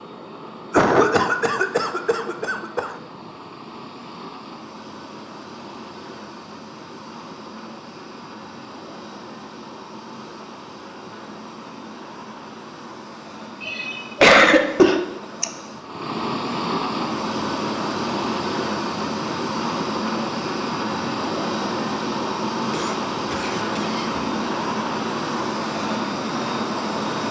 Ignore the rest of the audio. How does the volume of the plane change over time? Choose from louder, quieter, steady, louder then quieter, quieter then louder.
louder.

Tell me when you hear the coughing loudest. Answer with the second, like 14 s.
14 s.